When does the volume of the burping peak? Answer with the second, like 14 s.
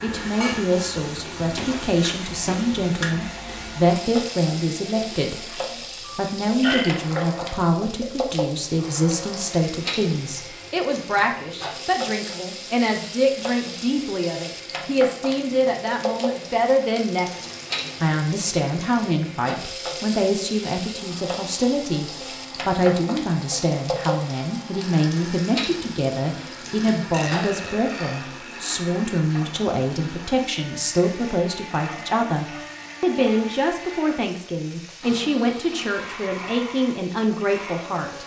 7 s.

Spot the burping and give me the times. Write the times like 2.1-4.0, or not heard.
5.3-7.2, 27.1-28.6.